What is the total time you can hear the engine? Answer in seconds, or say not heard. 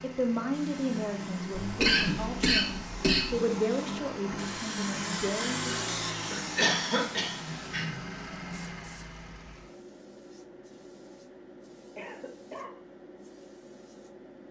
10 s.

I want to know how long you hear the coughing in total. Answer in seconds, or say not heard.
4 s.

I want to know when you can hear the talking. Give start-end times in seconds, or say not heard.
0.0-5.8.